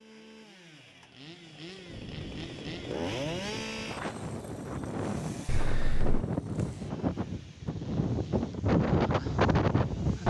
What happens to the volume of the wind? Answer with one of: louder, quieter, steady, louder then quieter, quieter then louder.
louder.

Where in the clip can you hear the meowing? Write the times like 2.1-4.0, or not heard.
5.5-6.2.